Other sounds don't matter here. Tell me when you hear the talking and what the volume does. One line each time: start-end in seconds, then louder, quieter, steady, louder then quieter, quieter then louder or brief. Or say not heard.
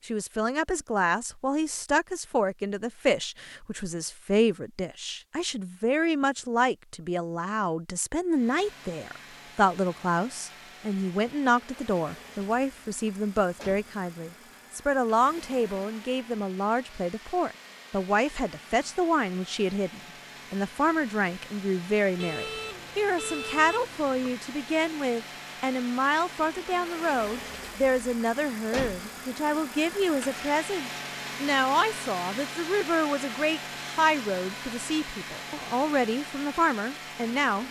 0.1-37.6 steady.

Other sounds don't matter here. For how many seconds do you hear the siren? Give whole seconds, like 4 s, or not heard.
not heard.